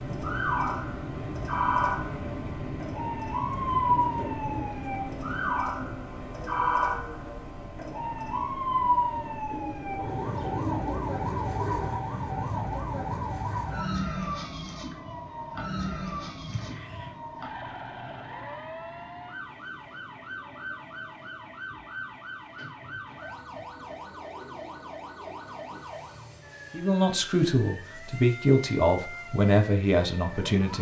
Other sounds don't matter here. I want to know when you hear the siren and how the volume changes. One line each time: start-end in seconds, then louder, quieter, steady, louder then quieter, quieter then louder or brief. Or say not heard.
0.0-30.7 quieter.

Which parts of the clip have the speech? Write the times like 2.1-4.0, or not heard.
26.7-30.7.